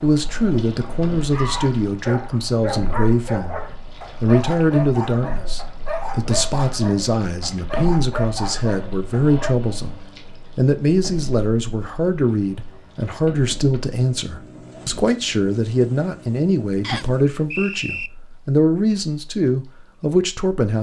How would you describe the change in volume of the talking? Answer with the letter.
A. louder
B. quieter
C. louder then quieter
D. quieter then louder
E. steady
E.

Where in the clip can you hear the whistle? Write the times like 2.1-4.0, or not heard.
16.8-18.1.